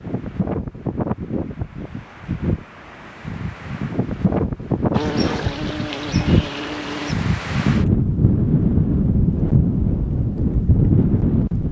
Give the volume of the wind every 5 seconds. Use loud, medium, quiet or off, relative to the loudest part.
medium, loud, loud.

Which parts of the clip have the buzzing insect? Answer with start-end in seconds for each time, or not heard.
4.9-7.2.